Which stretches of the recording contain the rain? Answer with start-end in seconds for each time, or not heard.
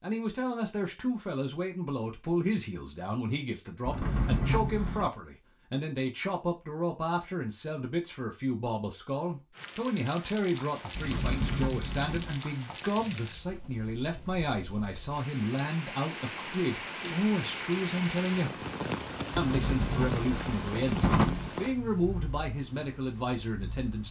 9.5-24.0.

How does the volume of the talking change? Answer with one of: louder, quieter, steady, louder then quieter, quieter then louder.
steady.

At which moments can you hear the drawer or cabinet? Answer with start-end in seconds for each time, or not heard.
3.9-5.1, 10.9-12.4, 19.4-21.5.